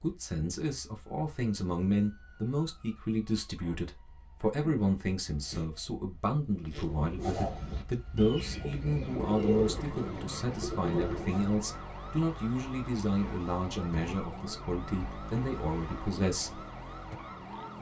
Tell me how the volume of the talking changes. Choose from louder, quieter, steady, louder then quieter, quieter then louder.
steady.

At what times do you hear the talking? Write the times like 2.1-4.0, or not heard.
0.0-16.6.